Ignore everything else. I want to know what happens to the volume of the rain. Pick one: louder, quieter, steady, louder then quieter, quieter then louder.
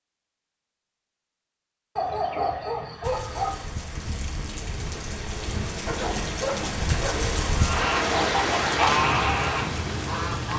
louder.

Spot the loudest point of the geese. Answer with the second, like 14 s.
9 s.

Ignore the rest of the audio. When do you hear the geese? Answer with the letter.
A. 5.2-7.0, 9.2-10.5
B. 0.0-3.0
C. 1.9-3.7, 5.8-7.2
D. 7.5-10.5
D.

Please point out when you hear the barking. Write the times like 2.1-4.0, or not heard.
1.9-3.7, 5.8-7.2.